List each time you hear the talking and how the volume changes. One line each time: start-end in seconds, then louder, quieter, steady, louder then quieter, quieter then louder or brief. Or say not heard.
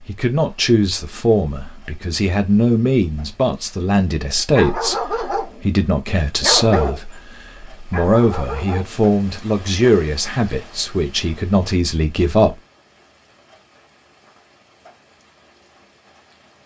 0.1-12.6 steady.